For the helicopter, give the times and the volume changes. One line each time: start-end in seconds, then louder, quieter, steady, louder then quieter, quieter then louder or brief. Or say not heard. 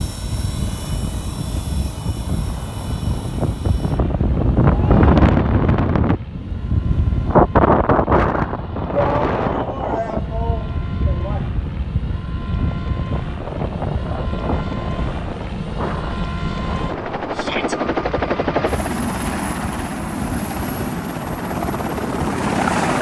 0.0-22.9 louder.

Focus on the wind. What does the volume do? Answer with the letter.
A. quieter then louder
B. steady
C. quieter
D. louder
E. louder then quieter
E.